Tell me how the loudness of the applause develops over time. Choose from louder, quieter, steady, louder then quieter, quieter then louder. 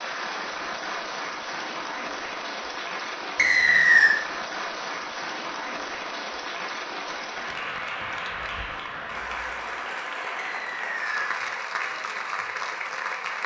steady.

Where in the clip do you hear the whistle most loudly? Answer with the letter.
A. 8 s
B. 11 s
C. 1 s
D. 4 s
D.